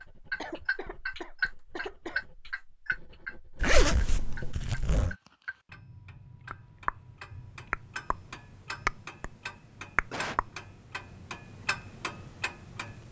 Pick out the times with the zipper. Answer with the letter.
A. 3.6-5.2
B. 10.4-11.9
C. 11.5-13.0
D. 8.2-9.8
A.